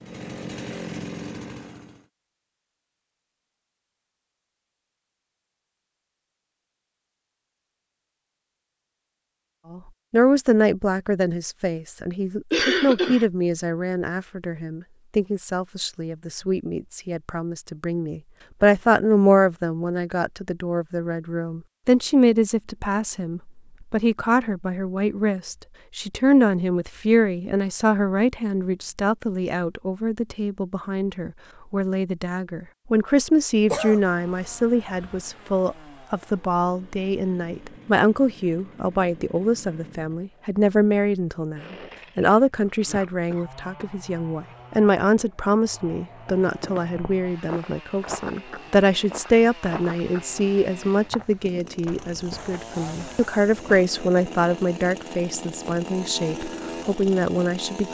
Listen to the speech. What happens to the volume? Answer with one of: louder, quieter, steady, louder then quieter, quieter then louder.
steady.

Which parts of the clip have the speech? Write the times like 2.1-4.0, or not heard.
9.7-57.8.